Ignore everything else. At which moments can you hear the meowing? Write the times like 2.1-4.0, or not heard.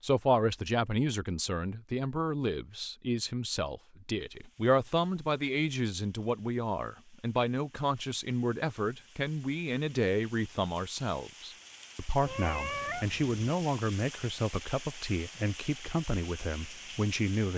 12.2-13.4.